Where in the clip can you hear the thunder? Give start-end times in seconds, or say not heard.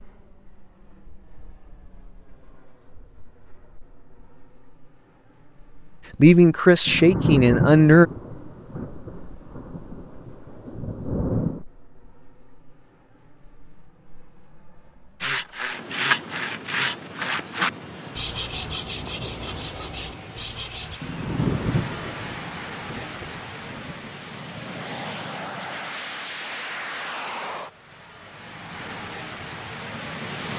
6.8-11.7, 21.0-24.1.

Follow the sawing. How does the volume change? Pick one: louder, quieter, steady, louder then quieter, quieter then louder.
quieter.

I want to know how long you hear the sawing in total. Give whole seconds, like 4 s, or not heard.
6 s.